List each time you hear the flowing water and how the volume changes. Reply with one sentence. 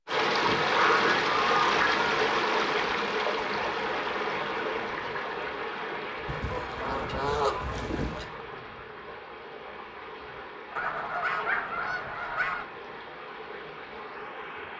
The flowing water can be heard from 0.1 to 14.7 s, getting quieter.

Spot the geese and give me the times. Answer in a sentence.
You can hear the geese from 0.4 to 2.2 s, from 6.2 to 8.3 s and from 10.8 to 12.7 s.